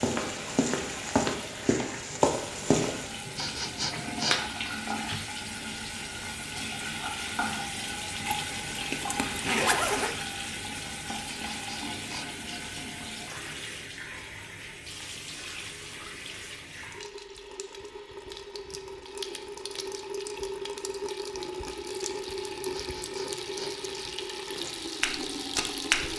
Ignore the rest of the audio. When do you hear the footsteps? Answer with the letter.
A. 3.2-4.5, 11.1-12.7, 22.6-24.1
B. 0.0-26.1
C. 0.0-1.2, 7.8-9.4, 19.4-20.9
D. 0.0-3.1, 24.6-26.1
D.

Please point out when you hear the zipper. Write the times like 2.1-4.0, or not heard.
8.6-10.2.